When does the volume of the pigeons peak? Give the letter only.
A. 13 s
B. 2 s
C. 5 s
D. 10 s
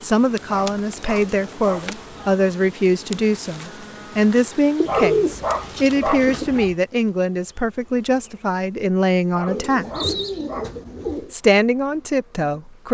C.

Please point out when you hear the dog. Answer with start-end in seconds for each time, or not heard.
0.5-2.3, 4.8-6.8, 9.3-11.2.